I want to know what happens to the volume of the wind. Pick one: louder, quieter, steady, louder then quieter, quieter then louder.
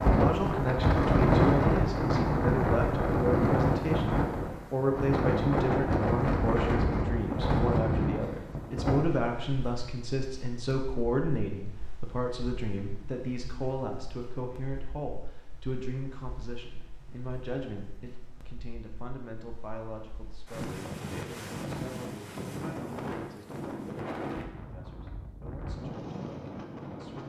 quieter then louder.